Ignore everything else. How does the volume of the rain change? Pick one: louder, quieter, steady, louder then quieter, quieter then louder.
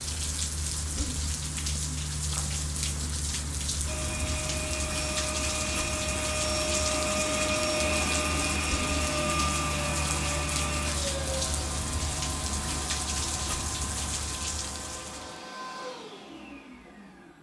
steady.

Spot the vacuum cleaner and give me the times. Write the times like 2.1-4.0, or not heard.
3.9-17.3.